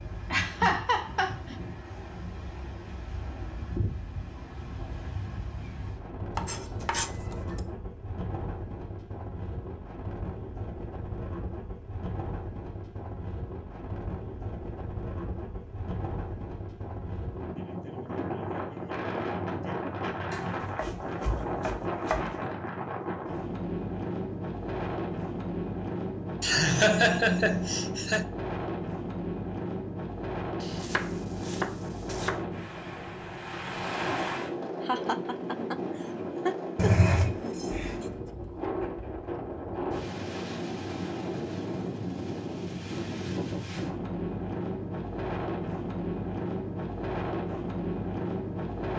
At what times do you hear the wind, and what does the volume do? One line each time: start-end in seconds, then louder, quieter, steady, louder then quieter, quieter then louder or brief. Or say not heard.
0.0-48.9 louder.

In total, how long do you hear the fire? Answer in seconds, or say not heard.
not heard.